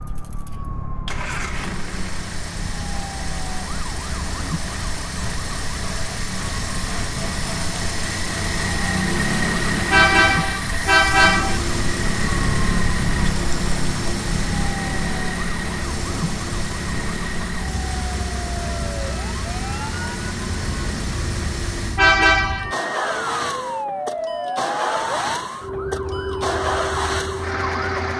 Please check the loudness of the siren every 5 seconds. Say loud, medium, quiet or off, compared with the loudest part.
medium, medium, loud, medium, loud, loud.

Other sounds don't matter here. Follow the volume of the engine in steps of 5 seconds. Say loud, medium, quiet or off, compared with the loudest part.
medium, loud, loud, loud, loud, loud.